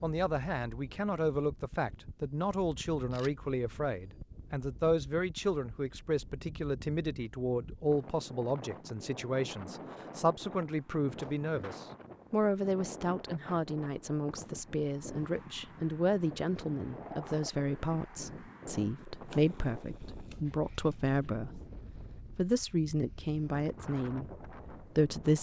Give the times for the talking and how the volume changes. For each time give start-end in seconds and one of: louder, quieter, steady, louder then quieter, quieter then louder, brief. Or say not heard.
0.0-25.3 steady.